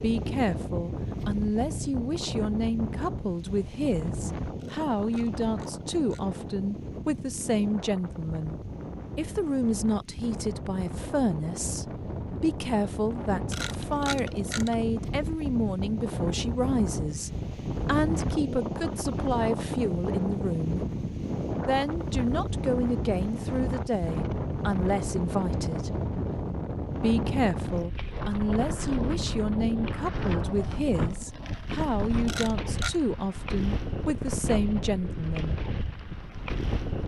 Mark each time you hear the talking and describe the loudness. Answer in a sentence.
You can hear the talking from 0.0 to 20.9 s, at a steady volume; from 21.6 to 25.9 s, at a steady volume; and from 27.0 to 35.6 s, at a steady volume.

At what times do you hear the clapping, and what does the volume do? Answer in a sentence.
The clapping can't be heard in this clip.